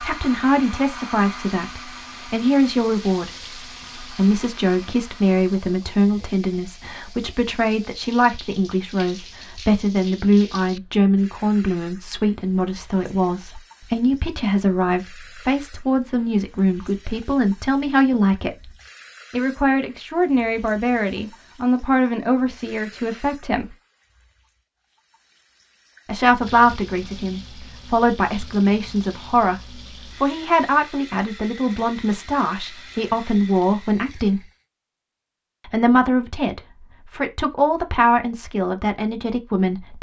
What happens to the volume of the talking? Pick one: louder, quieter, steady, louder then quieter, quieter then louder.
steady.